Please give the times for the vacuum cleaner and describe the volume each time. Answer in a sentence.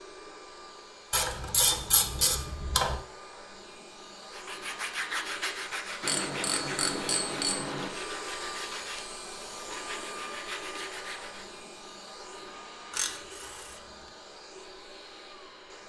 The vacuum cleaner can be heard from 0.0 to 15.8 s, getting louder then quieter.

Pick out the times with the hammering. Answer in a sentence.
The hammering can't be heard in this clip.